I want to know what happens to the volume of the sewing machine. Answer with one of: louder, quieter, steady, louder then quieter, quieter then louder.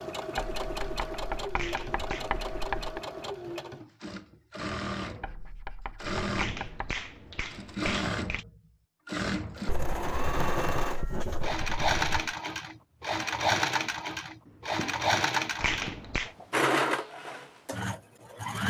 louder.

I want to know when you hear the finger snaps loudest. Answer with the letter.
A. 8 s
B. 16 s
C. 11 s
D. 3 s
B.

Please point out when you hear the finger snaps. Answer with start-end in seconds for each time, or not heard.
1.6-2.2, 6.3-8.4, 15.6-16.3.